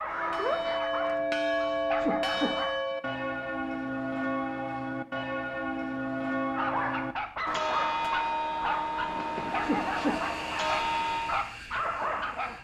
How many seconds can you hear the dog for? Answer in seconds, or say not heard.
9 s.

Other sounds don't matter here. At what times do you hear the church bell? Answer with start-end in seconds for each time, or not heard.
0.1-11.4.